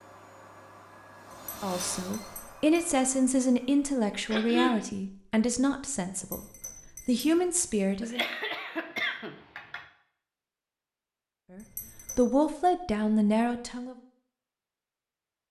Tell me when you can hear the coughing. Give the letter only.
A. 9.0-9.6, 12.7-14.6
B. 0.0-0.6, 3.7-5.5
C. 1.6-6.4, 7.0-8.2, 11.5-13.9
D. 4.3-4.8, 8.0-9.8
D.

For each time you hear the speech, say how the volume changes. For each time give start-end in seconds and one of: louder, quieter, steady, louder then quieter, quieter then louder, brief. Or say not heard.
1.6-6.4 steady
7.0-8.2 brief
11.5-13.9 brief.